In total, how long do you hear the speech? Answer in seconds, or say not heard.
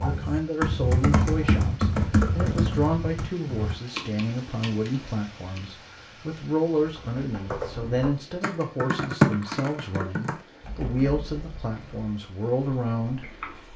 14 s.